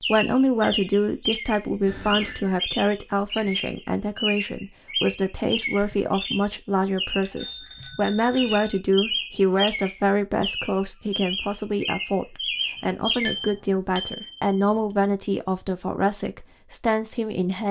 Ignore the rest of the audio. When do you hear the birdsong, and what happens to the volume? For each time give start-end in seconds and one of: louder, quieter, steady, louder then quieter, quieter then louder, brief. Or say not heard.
0.0-13.3 steady.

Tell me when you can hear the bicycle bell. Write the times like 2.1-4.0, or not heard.
1.9-2.5, 7.2-8.8, 12.8-14.6.